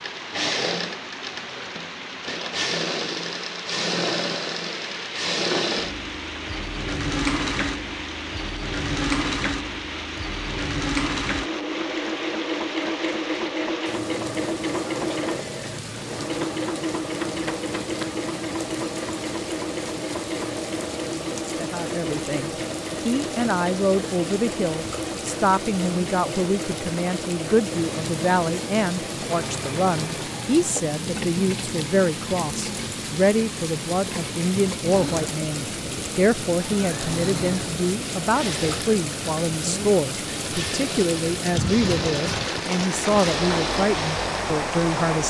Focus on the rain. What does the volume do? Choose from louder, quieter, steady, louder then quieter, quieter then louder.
louder.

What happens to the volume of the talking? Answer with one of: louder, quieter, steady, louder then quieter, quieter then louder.
steady.